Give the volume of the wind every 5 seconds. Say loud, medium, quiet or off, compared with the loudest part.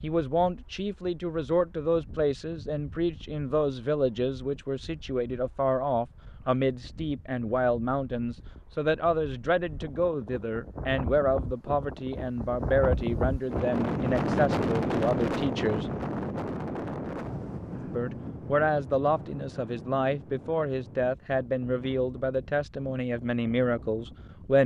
quiet, quiet, loud, loud, quiet.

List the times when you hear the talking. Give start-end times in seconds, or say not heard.
0.0-15.9, 17.9-24.6.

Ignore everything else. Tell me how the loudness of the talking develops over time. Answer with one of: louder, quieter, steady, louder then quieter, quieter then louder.
steady.